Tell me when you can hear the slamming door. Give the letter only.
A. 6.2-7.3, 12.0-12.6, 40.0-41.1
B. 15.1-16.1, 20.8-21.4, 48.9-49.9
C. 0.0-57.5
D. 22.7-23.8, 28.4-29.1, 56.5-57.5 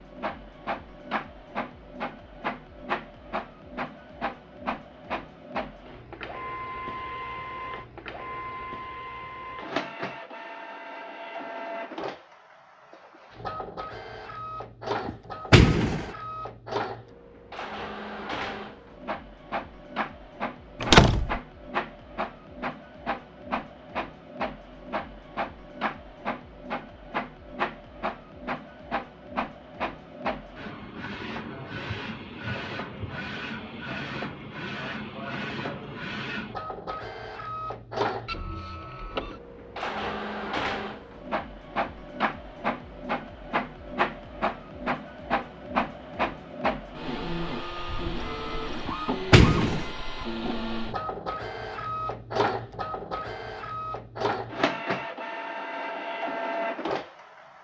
B.